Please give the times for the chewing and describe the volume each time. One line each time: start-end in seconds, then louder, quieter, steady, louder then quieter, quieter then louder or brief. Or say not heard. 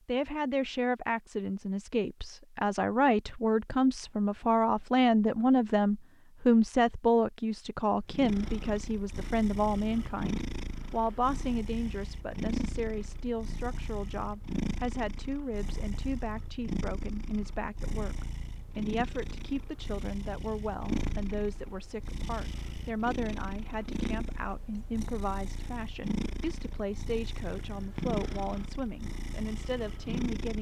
not heard.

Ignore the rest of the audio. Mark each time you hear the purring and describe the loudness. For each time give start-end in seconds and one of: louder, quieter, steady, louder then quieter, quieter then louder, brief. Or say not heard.
8.1-30.5 steady.